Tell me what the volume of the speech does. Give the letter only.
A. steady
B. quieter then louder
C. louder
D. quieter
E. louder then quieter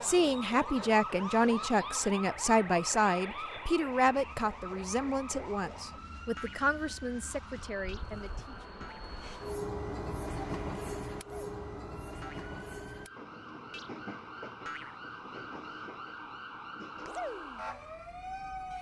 D.